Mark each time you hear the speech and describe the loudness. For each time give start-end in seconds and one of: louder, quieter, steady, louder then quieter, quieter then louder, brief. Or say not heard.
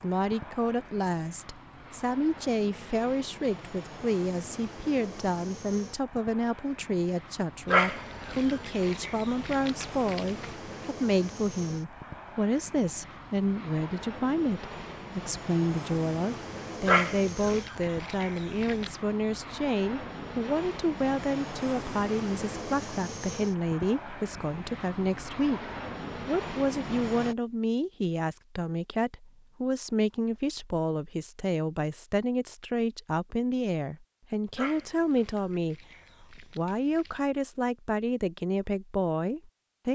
0.0-25.6 steady
26.2-39.9 steady.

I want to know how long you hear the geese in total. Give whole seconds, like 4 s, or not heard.
not heard.